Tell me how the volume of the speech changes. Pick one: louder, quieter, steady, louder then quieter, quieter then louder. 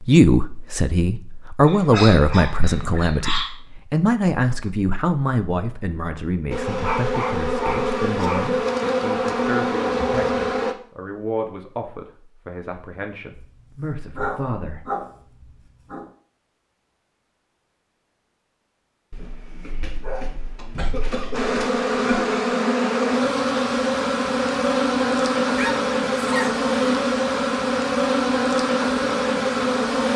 quieter.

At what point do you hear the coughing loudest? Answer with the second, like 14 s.
22 s.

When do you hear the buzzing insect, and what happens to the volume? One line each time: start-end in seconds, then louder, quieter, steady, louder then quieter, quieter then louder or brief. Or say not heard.
6.5-10.8 steady
21.3-30.1 steady.